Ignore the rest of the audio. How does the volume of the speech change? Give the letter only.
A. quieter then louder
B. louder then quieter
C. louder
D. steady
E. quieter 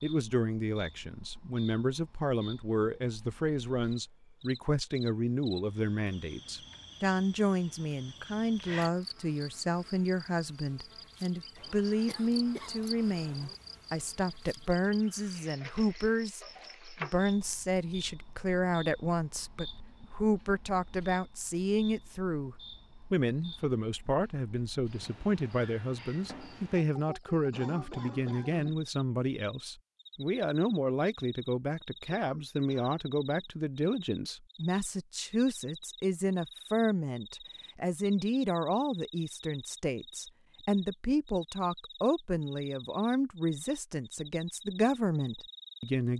D.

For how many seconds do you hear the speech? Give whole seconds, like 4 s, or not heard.
46 s.